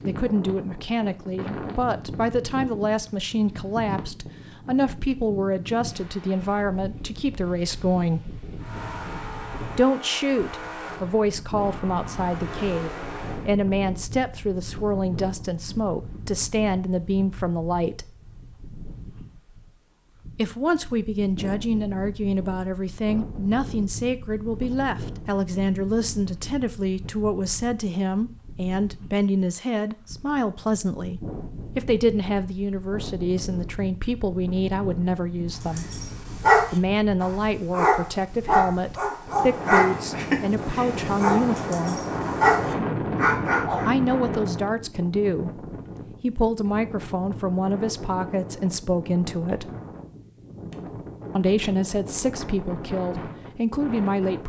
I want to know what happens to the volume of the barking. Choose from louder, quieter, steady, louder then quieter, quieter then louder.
quieter then louder.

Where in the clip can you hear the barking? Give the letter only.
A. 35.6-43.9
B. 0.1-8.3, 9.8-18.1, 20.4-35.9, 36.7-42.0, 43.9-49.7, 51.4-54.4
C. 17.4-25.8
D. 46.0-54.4
A.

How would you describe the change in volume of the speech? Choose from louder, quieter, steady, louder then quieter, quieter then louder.
steady.